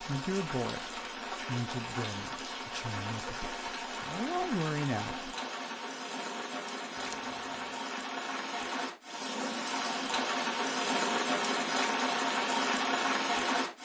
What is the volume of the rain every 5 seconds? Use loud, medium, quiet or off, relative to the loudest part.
medium, medium, loud.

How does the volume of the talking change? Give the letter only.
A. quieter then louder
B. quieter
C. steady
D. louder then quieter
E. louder
A.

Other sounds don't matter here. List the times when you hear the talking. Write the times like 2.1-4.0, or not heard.
0.0-5.3.